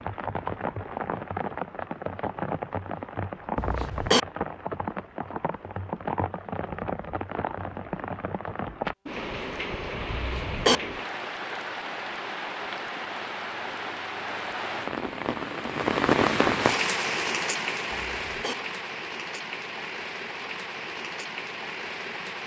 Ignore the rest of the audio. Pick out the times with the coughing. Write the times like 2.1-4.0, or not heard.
3.5-4.2, 10.1-10.8, 17.9-18.6.